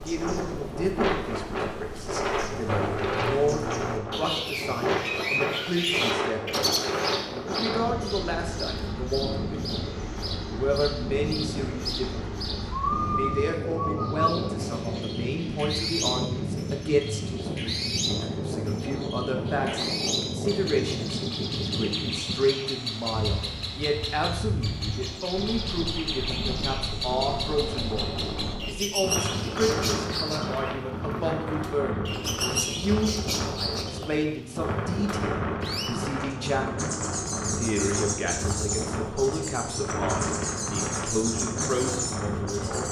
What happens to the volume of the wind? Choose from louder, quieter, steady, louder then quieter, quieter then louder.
steady.